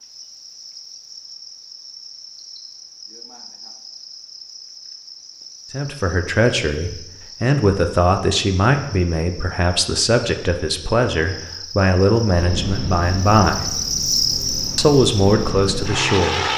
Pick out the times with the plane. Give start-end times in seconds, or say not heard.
12.3-16.5.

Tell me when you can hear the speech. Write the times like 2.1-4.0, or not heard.
5.7-13.7, 14.8-16.4.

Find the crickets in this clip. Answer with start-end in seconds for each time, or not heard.
0.0-16.5.